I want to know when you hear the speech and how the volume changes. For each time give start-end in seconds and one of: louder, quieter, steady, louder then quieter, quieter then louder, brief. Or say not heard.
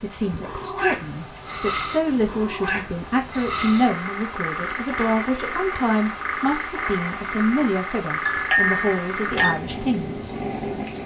0.0-10.3 steady.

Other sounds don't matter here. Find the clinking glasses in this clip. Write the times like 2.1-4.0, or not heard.
8.2-9.6.